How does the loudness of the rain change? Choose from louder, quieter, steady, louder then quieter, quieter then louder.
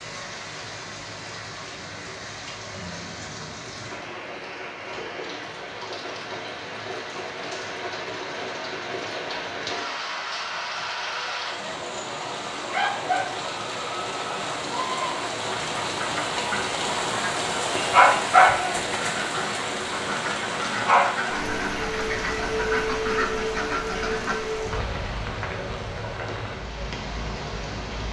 louder then quieter.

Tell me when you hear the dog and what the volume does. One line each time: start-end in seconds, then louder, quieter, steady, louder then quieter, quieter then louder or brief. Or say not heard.
not heard.